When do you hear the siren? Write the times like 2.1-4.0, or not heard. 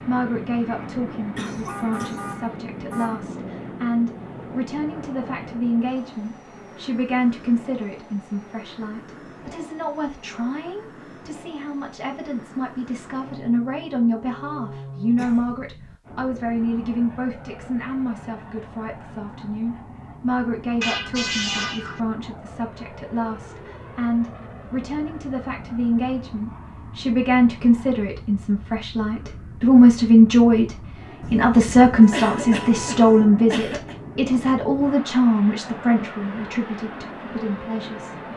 not heard.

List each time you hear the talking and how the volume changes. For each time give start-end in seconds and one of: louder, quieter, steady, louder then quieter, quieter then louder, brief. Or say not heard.
0.0-38.2 louder.